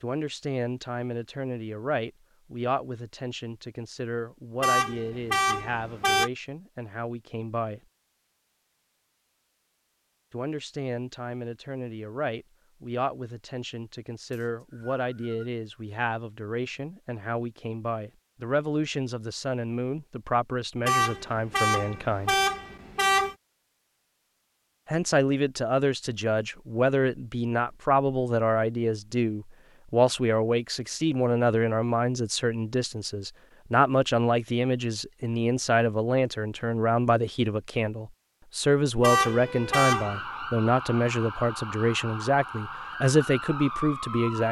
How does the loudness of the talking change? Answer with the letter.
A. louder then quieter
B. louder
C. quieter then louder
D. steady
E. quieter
B.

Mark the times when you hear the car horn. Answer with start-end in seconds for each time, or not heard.
4.6-6.3, 20.9-23.4, 39.0-40.2.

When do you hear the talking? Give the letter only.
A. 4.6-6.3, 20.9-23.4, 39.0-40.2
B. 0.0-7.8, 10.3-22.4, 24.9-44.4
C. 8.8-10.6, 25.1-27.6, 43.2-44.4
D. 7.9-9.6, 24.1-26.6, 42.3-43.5
B.